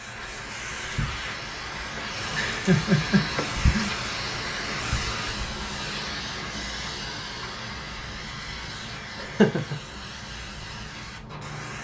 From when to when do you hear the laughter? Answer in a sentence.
The laughter can be heard from 2.3 to 4.0 s and from 9.2 to 9.8 s.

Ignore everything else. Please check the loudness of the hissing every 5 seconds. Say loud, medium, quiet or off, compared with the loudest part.
loud, loud, medium.